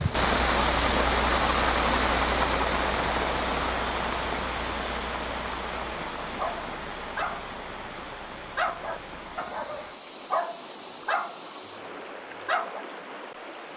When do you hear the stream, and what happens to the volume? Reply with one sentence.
The stream can be heard from 0.0 to 13.7 s, getting quieter.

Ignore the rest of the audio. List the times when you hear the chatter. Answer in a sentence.
You can't hear the chatter here.